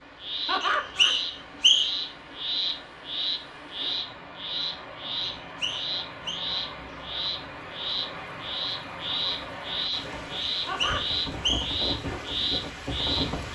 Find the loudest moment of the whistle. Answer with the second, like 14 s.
2 s.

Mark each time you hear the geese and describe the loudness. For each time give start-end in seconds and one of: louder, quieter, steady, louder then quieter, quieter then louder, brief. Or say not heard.
not heard.